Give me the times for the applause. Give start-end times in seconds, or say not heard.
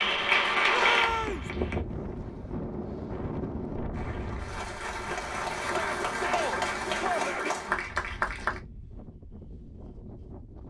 0.0-1.9, 3.9-8.6.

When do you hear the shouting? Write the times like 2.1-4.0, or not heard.
0.7-1.5, 5.6-7.5.